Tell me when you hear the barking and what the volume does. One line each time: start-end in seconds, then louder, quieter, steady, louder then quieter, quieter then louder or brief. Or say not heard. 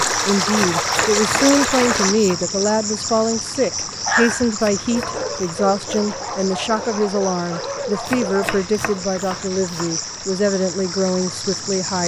4.0-9.1 steady.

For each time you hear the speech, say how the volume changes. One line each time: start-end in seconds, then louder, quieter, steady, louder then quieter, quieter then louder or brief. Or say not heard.
0.2-12.0 steady.